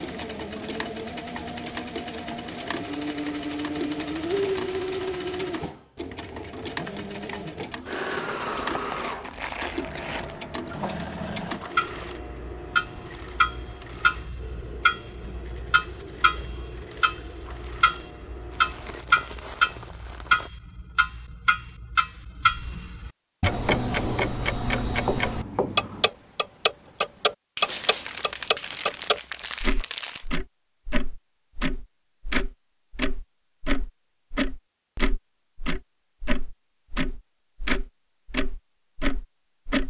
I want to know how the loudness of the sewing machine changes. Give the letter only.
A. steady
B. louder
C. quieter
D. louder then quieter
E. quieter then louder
C.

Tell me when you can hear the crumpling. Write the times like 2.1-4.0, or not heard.
8.7-10.4, 18.5-20.5, 27.6-30.2.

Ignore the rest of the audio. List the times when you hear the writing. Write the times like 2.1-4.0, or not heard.
23.6-26.1.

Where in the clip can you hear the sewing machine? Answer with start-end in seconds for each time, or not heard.
0.0-19.1.